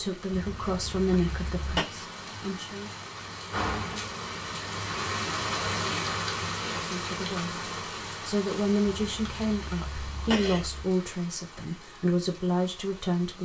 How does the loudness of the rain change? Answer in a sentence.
The volume of the rain goes up, then down.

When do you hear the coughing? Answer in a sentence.
The coughing can be heard from 0.3 to 1.9 s and from 8.8 to 10.8 s.